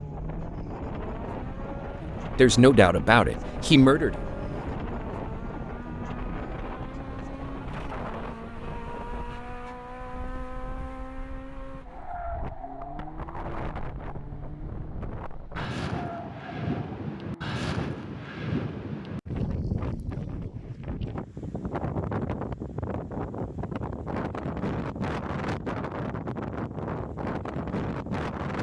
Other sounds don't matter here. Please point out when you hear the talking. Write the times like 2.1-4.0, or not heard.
2.4-4.1.